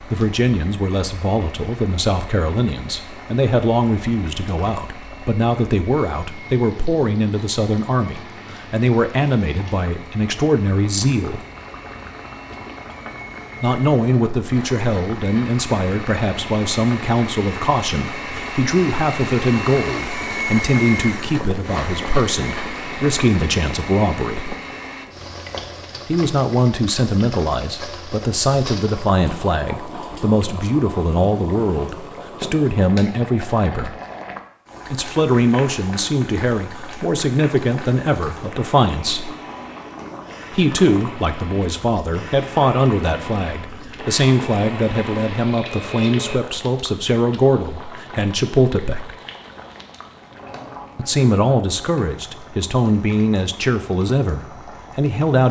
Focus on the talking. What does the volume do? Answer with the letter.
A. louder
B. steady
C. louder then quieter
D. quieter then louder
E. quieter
B.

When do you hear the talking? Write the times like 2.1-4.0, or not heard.
0.0-11.4, 13.6-24.6, 26.1-34.0, 34.9-39.4, 40.5-49.1, 51.0-55.4.